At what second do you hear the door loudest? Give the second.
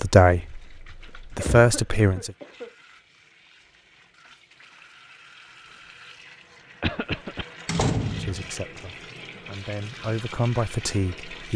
8 s.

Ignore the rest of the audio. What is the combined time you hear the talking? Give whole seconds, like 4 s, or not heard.
6 s.